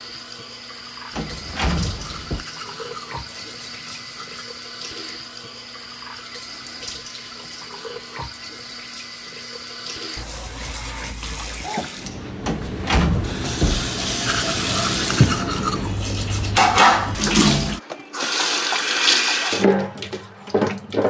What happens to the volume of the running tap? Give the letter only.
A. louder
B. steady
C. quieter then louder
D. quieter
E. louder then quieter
A.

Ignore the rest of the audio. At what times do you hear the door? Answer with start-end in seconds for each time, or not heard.
1.1-2.5, 12.4-13.9.